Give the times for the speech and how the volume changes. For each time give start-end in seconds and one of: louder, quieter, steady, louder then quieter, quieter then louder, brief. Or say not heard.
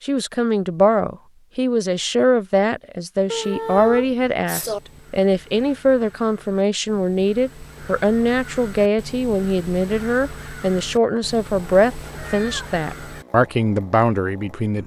0.0-14.8 steady.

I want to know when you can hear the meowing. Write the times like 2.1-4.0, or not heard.
3.3-4.8, 12.2-12.7.